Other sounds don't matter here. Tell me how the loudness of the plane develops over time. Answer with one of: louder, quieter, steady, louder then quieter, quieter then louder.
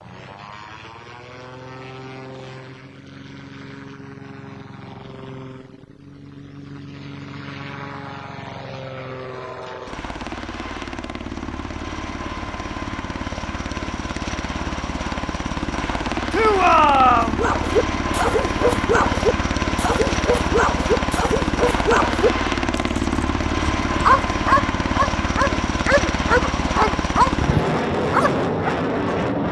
louder.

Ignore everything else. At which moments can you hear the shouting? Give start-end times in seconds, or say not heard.
16.3-17.4.